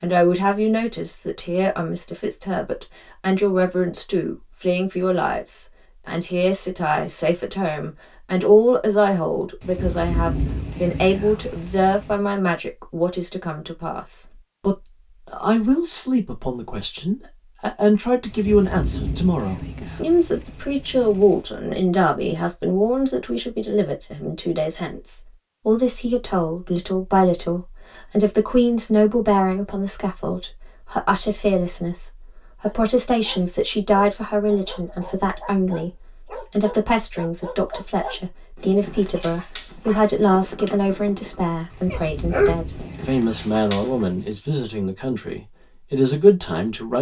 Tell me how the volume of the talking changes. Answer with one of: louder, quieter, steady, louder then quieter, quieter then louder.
steady.